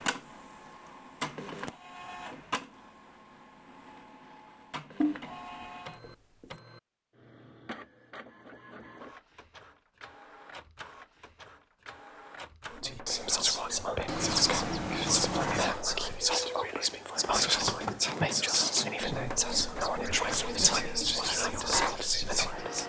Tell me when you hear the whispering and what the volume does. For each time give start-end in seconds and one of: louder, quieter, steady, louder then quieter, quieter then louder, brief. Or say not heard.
12.8-22.8 steady.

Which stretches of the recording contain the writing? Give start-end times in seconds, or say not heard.
5.0-6.5, 14.1-15.7.